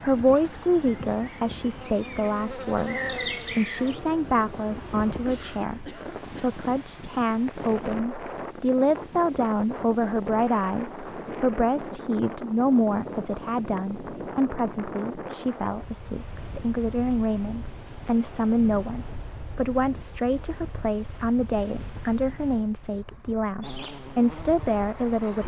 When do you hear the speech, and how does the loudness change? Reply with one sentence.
You can hear the speech from 0.0 to 25.4 s, at a steady volume.